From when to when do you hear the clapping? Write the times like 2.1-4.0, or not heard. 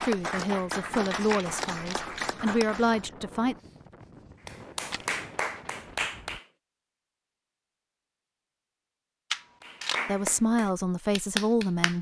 0.0-3.1, 4.5-6.5, 9.6-11.9.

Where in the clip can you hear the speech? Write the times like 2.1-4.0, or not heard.
0.0-3.5, 10.1-11.9.